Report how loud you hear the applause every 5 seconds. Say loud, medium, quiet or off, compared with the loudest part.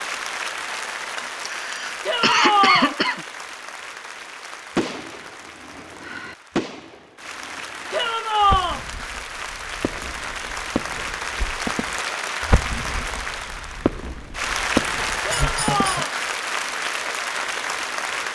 medium, medium, loud, loud.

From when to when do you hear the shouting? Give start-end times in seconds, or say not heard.
2.0-3.0, 7.9-8.8, 15.2-16.1.